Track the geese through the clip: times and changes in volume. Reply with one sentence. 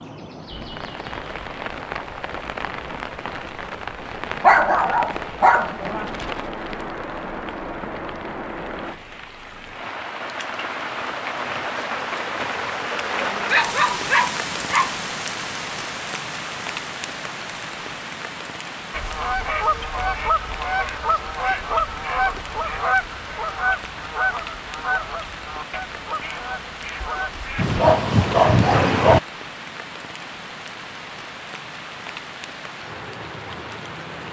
The geese can be heard from 18.9 to 27.8 s, getting quieter.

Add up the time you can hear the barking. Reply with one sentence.
The barking can be heard for 5 seconds in total.